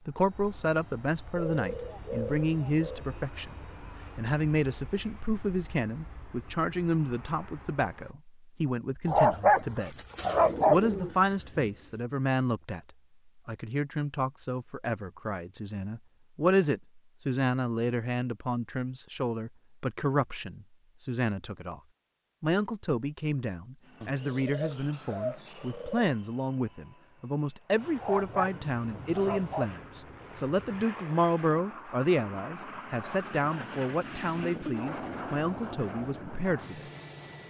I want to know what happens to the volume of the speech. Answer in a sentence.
The loudness of the speech stays about the same.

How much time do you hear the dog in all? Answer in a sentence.
The dog can be heard for 4 seconds in total.